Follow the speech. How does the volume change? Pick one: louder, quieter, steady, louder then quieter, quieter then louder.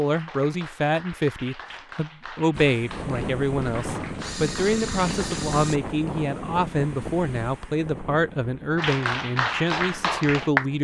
steady.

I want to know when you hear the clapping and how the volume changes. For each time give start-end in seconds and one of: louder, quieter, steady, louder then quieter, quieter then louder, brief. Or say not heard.
0.0-5.6 steady
8.8-10.7 brief.